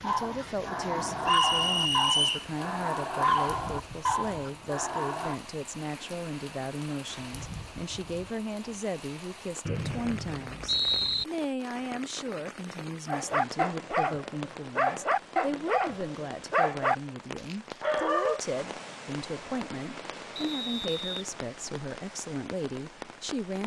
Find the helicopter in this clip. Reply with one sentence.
You can't hear the helicopter here.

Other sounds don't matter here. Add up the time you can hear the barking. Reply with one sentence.
You can hear the barking for 11 seconds altogether.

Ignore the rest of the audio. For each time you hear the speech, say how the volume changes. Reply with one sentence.
The speech can be heard from 0.0 to 23.6 s, at a steady volume.